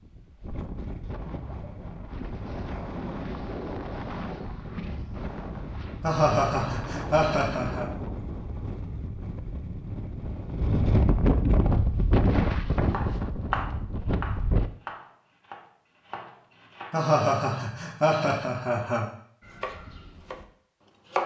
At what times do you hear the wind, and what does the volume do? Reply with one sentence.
You can hear the wind from 0.0 to 14.7 s, getting louder.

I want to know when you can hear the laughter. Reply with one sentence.
The laughter can be heard from 6.0 to 7.8 s and from 16.9 to 19.1 s.